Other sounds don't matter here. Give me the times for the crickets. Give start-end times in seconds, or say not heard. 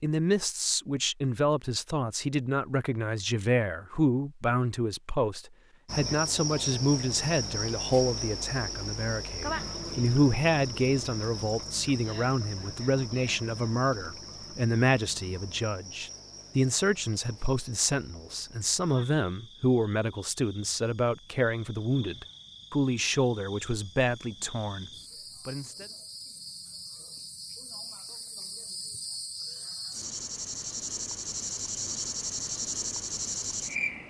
5.8-34.0.